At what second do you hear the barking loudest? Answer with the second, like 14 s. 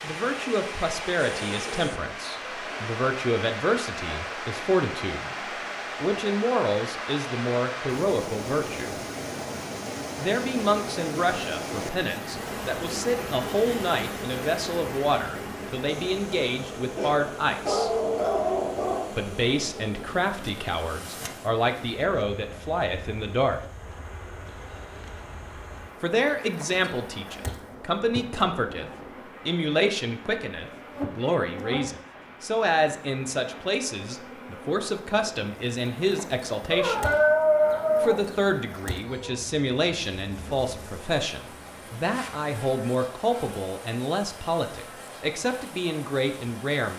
37 s.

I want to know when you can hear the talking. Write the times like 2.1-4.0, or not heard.
0.0-5.3, 6.0-8.9, 10.2-17.9, 19.1-23.6, 26.0-37.1, 38.0-46.9.